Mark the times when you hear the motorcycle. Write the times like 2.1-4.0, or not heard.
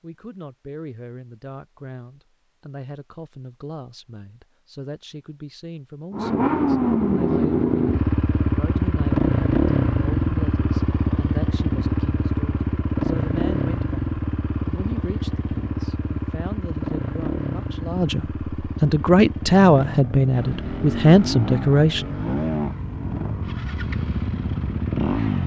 6.1-25.4.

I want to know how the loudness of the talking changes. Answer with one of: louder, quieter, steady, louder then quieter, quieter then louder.
louder.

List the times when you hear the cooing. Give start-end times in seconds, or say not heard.
not heard.